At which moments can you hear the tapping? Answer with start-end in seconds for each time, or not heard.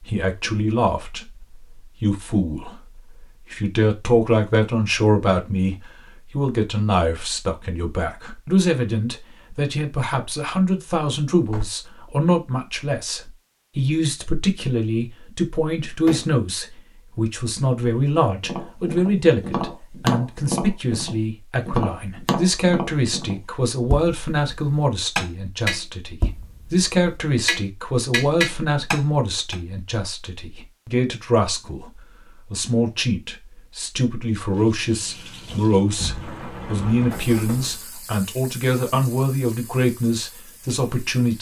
18.4-29.6.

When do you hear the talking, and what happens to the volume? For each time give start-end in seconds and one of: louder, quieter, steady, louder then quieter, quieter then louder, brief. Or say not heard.
0.0-41.3 steady.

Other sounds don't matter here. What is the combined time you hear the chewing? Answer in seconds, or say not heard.
not heard.